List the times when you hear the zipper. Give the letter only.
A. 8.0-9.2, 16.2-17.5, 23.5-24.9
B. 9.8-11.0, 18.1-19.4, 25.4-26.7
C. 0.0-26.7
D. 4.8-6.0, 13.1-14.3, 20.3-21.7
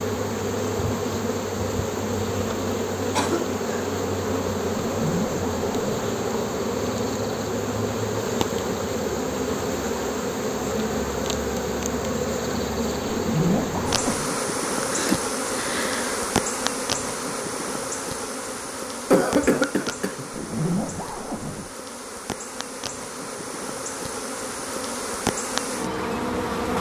D.